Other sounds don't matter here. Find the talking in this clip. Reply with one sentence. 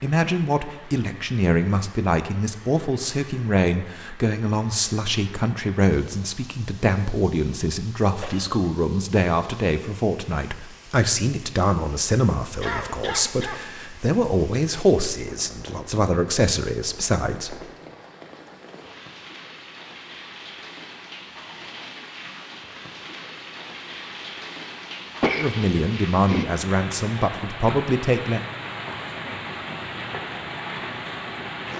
You can hear the talking from 0.0 to 17.6 s and from 25.4 to 28.4 s.